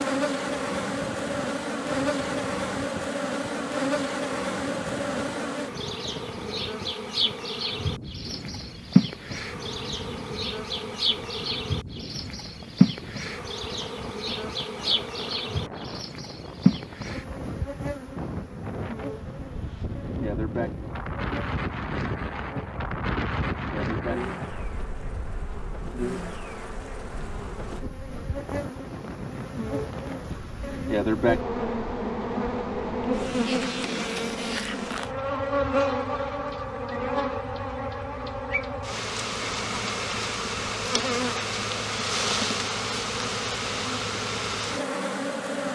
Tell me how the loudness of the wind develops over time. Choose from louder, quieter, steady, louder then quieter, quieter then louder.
louder then quieter.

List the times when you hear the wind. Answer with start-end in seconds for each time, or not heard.
0.2-33.5.